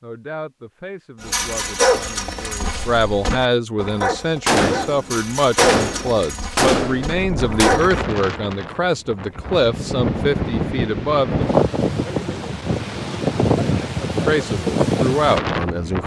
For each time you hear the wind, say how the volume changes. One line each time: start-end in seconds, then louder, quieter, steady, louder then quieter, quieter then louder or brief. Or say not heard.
7.0-16.0 louder.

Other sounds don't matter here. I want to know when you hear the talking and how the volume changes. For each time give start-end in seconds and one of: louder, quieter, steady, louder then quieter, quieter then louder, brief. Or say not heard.
0.0-11.4 louder
14.2-16.0 brief.